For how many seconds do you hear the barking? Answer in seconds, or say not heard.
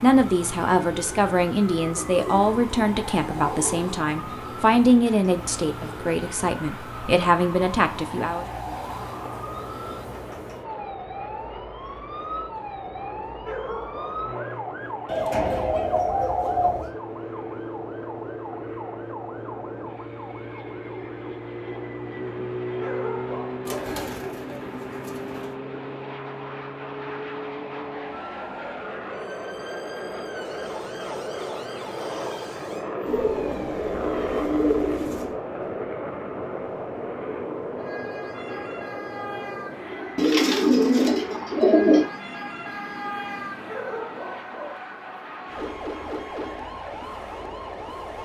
3 s.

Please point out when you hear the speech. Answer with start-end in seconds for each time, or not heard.
0.0-8.4.